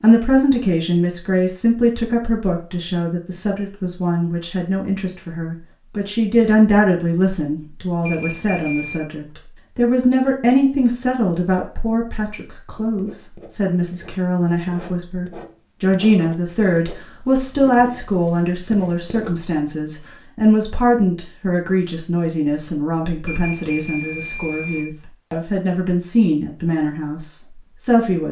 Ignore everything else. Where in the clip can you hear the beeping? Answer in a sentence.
You can hear the beeping from 8.0 to 9.0 s and from 23.2 to 24.9 s.